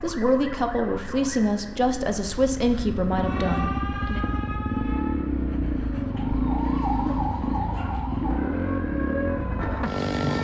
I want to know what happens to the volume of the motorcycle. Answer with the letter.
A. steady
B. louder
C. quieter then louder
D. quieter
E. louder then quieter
B.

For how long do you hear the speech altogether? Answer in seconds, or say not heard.
4 s.